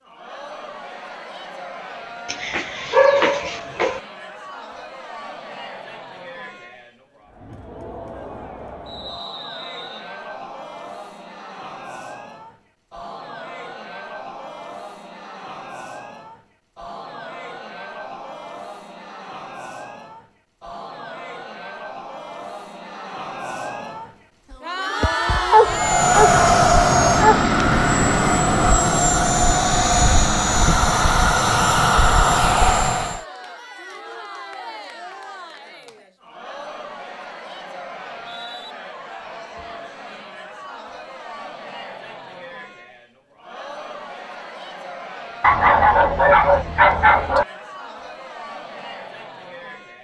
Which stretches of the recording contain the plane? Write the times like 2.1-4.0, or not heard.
25.6-33.2.